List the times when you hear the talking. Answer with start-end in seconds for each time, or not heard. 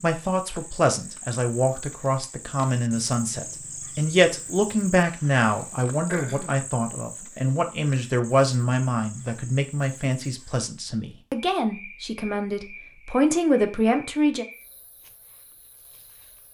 0.0-14.4.